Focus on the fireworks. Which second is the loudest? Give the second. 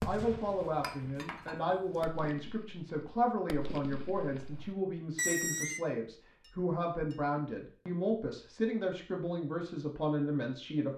5 s.